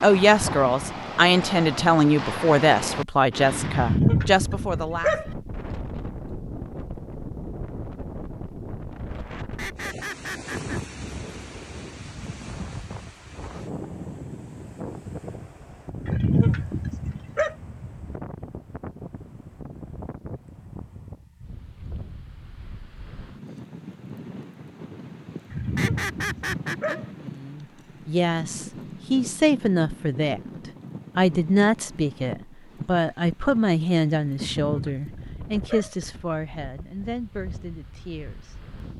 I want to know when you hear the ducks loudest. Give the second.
26 s.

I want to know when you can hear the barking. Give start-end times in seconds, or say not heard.
3.7-5.2, 16.1-17.6, 25.5-27.1, 34.4-36.0.